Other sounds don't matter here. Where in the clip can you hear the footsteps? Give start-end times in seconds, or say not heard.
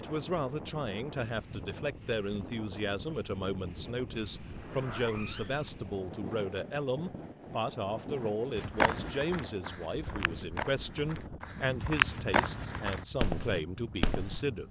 8.6-14.4.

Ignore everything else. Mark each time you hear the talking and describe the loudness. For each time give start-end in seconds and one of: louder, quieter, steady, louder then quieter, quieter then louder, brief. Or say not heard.
0.0-14.6 steady.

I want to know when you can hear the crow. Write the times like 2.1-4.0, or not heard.
not heard.